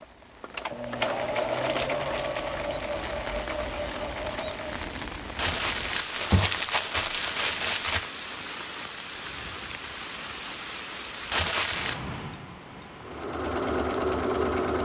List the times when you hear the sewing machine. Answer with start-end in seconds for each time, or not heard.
0.0-4.8, 13.1-14.7.